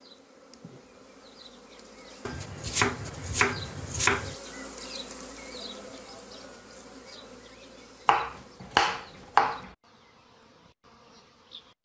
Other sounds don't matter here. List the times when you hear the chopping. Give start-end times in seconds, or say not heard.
2.2-4.3, 8.1-9.6.